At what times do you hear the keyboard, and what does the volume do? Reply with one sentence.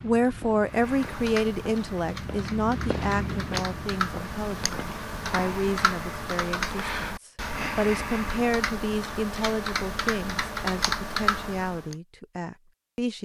You can hear the keyboard from 0.7 to 11.9 s, getting louder.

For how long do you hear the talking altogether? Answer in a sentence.
The talking can be heard for 13 seconds in total.